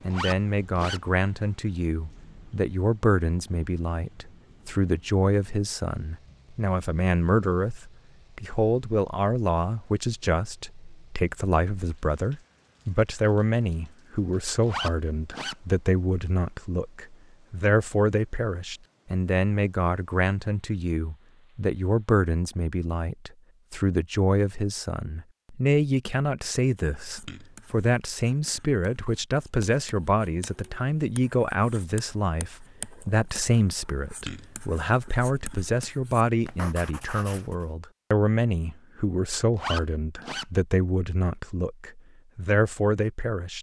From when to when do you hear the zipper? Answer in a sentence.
You can hear the zipper from 0.1 to 1.0 s, from 14.7 to 15.6 s and from 39.5 to 40.5 s.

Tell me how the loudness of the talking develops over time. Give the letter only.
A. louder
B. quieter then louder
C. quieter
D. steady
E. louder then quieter
D.